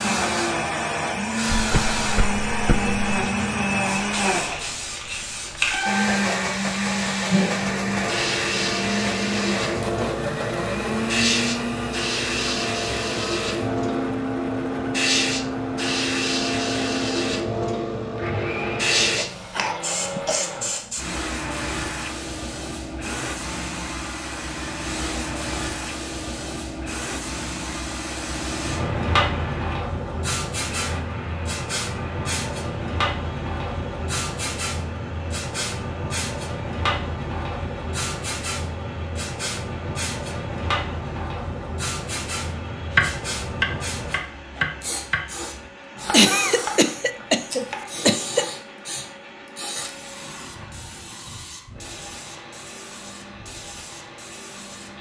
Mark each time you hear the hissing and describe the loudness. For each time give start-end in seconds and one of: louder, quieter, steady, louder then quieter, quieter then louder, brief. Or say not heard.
0.0-54.9 quieter.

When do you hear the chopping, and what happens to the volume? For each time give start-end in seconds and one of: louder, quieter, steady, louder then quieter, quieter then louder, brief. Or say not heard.
42.9-48.6 quieter.